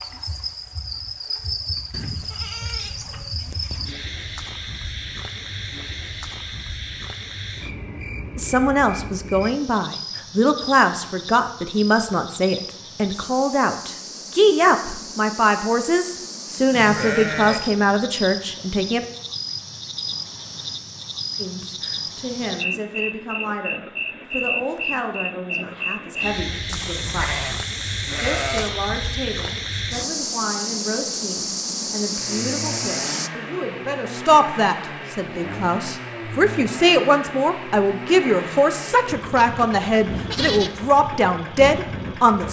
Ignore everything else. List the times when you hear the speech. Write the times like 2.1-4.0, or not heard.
8.3-19.1, 21.4-27.5, 28.2-42.4.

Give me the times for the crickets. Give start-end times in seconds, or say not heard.
0.0-33.3.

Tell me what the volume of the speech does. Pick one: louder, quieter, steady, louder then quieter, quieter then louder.
quieter then louder.